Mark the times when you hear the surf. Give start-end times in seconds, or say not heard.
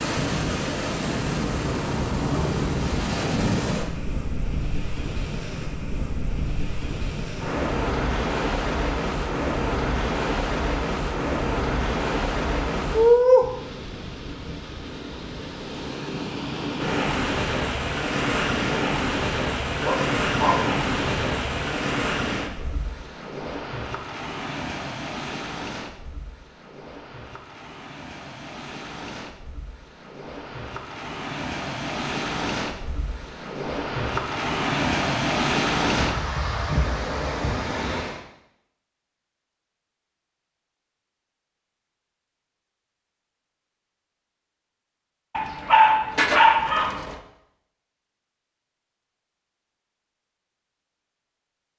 0.0-38.2.